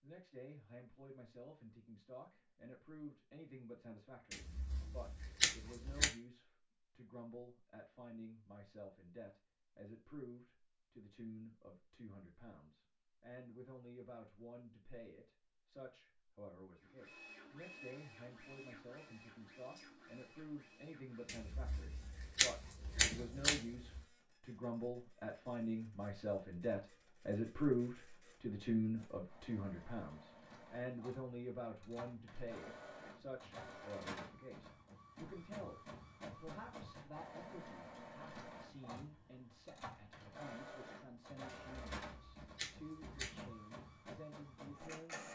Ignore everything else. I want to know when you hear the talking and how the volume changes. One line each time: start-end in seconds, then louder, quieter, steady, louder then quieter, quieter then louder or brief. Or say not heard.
0.0-45.2 louder then quieter.